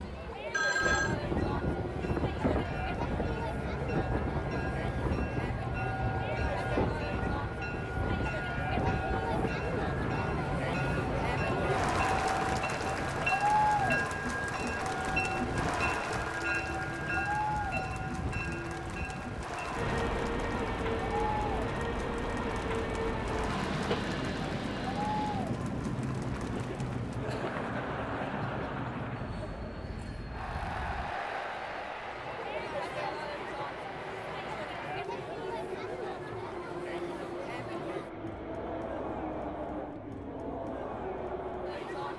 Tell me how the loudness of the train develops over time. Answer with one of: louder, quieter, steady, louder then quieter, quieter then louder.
quieter.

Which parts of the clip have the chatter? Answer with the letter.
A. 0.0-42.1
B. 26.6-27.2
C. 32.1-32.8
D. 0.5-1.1
A.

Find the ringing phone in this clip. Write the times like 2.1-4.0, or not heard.
0.5-1.1.